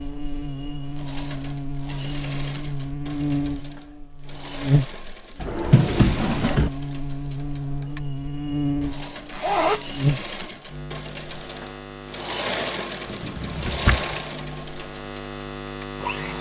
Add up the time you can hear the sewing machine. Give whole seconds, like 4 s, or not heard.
16 s.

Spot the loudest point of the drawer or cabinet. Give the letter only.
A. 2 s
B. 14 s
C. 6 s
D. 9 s
C.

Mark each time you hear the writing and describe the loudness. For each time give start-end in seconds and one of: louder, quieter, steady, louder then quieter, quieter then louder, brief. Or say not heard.
not heard.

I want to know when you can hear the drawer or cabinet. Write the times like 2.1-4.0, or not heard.
5.3-6.7, 13.1-14.2.